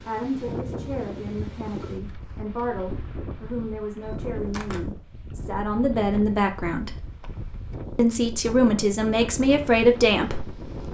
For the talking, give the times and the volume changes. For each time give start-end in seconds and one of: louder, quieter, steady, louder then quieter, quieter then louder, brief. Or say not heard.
0.1-7.0 louder
8.0-10.6 brief.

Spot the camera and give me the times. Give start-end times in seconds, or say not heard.
4.0-4.8.